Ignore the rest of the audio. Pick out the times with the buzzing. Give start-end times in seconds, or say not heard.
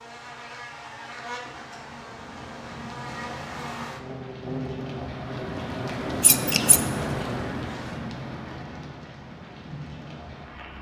0.0-8.0.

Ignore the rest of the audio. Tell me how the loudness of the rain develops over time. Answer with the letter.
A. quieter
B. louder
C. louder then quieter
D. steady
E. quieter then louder
C.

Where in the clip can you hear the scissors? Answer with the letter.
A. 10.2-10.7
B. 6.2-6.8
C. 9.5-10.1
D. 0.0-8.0
B.